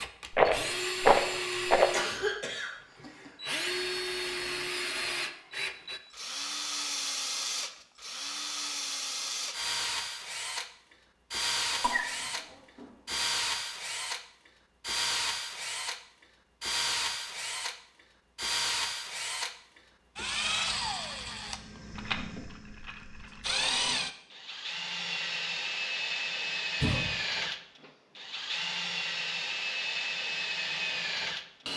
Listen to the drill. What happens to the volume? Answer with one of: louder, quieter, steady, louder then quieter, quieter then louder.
steady.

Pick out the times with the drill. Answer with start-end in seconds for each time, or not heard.
0.0-31.7.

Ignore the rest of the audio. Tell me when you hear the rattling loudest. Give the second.
1 s.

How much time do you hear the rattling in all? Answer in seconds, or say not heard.
3 s.